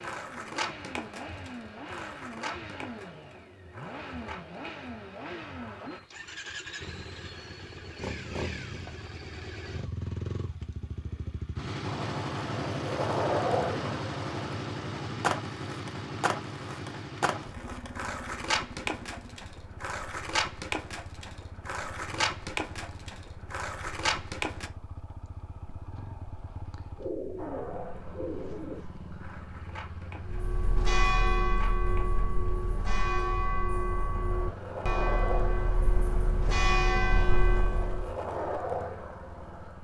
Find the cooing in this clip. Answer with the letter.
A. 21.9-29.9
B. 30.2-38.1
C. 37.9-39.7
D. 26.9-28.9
D.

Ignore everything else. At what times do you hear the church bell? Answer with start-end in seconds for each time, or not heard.
30.2-38.1.